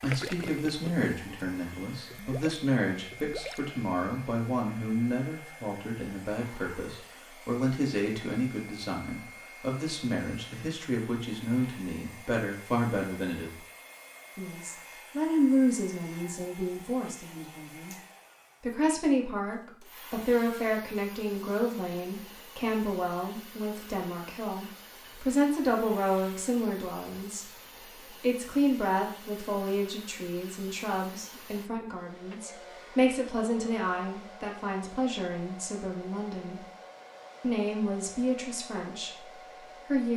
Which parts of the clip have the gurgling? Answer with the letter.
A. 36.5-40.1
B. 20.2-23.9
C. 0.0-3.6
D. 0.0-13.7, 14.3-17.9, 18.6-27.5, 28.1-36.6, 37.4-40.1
C.